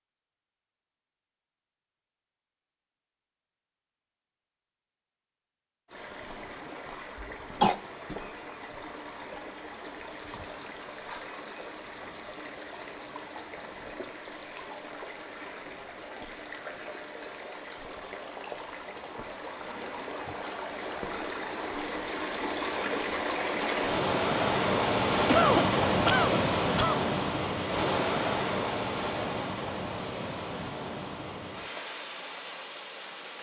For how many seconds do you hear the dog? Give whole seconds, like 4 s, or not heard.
not heard.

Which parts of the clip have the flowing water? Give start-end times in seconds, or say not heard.
5.8-33.3.